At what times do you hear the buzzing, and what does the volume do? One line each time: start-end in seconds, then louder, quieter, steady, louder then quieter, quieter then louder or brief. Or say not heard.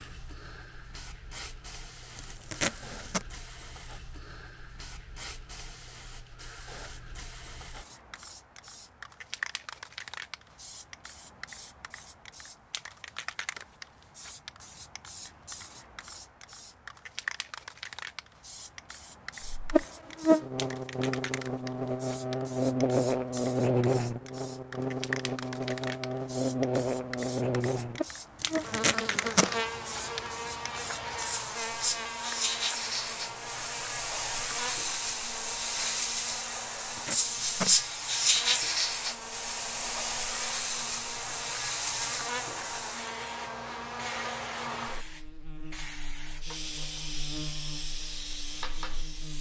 19.5-49.3 quieter.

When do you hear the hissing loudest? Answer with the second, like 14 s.
38 s.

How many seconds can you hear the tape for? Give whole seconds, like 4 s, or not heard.
3 s.